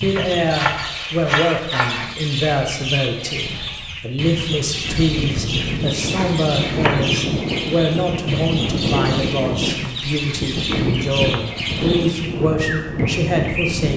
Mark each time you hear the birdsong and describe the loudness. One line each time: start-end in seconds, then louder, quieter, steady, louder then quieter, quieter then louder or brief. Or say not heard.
0.0-13.9 steady.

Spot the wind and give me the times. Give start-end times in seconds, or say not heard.
4.8-13.9.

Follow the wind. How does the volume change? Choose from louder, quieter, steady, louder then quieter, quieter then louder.
steady.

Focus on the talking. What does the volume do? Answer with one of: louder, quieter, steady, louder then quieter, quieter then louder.
steady.